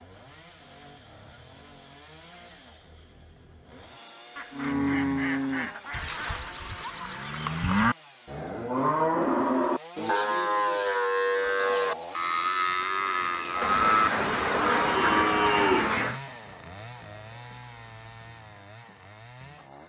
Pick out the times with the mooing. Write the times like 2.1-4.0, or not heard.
4.5-15.9.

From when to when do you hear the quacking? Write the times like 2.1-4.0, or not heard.
4.3-6.5, 13.6-16.2.